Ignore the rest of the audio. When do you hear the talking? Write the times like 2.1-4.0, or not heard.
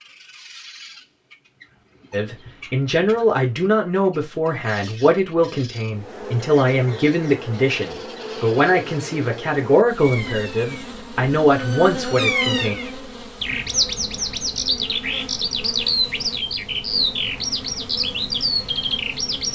2.1-12.8.